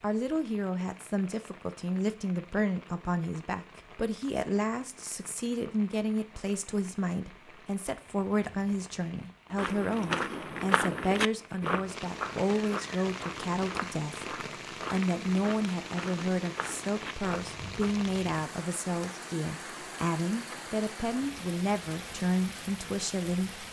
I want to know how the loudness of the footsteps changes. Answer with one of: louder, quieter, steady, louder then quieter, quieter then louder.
quieter.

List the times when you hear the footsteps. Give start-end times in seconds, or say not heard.
9.6-17.9.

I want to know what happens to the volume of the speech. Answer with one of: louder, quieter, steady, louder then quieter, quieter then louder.
steady.